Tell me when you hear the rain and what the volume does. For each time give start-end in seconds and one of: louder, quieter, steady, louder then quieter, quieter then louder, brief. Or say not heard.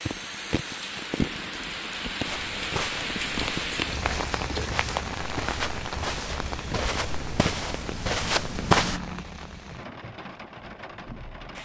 0.0-11.6 quieter.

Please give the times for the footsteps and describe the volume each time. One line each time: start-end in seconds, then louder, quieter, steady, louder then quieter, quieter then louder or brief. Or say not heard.
2.2-9.0 louder.